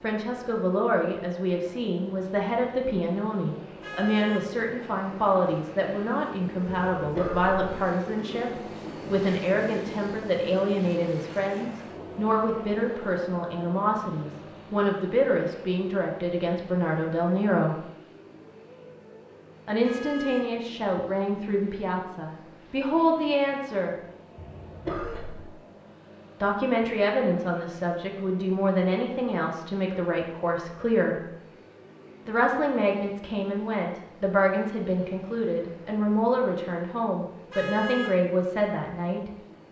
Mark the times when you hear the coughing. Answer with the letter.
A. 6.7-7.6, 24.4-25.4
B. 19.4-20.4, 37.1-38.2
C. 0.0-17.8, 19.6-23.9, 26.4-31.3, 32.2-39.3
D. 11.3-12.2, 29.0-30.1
A.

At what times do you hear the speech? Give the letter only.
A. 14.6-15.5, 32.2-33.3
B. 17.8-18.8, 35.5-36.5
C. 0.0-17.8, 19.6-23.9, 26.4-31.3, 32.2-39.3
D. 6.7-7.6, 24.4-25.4
C.